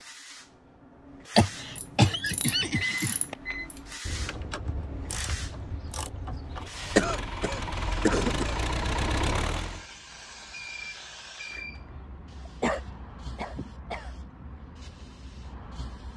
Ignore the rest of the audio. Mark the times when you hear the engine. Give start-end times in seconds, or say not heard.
6.5-9.8.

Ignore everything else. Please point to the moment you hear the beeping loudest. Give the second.
3 s.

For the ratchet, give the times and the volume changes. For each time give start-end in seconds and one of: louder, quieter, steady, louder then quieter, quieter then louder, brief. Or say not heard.
1.8-6.7 steady.